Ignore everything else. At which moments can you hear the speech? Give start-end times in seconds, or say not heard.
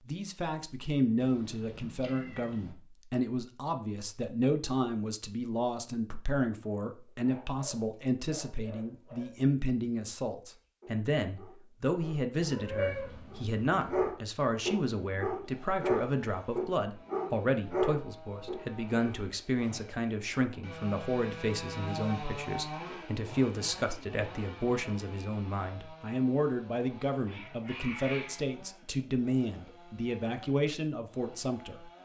0.1-31.9.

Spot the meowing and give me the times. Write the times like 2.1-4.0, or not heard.
1.2-2.8, 12.3-14.1, 27.2-28.4.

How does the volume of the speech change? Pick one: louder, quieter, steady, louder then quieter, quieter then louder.
steady.